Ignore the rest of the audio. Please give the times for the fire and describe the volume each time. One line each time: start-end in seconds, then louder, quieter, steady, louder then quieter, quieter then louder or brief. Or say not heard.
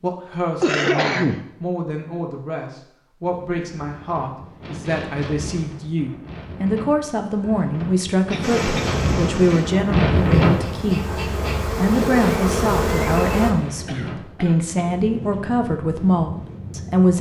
not heard.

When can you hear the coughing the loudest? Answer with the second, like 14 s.
1 s.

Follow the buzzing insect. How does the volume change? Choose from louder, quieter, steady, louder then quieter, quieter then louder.
quieter then louder.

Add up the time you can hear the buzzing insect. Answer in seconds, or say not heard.
5 s.